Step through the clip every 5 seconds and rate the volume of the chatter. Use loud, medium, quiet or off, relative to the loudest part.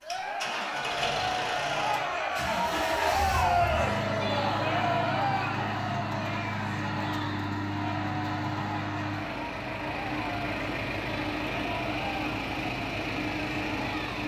loud, medium, medium.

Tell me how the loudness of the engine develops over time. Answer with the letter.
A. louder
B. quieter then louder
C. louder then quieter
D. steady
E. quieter
D.